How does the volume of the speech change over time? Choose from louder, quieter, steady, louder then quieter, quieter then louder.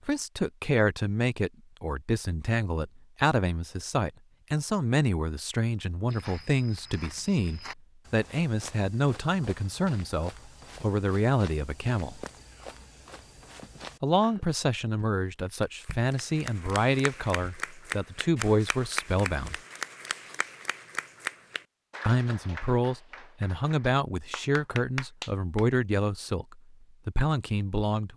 steady.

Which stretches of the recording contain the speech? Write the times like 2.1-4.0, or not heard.
0.1-12.2, 14.0-19.6, 22.1-28.1.